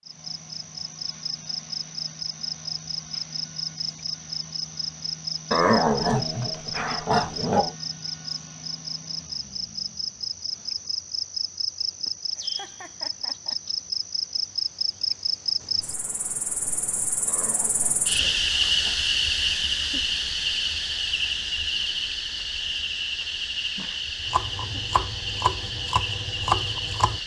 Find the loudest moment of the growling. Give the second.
6 s.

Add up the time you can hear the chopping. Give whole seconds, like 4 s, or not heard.
3 s.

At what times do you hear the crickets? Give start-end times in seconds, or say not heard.
0.1-27.2.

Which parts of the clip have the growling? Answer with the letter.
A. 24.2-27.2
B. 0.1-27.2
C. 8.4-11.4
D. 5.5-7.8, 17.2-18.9
D.